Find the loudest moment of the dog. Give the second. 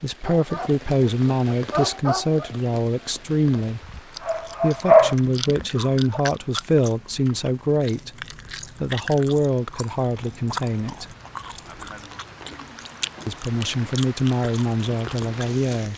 5 s.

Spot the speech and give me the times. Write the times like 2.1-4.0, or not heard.
0.0-3.8, 4.6-11.1, 13.2-15.9.